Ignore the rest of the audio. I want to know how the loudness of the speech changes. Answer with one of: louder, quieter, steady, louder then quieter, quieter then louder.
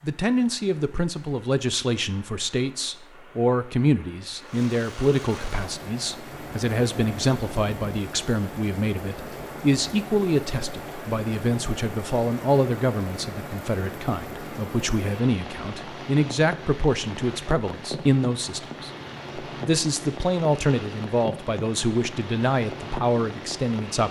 steady.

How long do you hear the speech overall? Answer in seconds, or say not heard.
24 s.